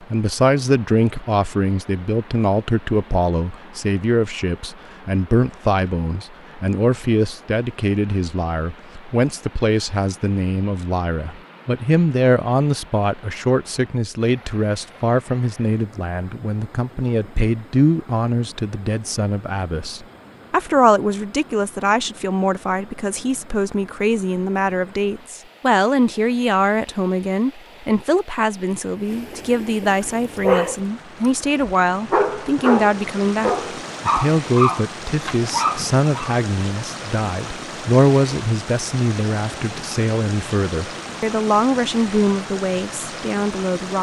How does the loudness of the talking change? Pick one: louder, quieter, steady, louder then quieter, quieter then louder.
steady.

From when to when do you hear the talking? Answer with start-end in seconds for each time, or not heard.
0.1-43.9.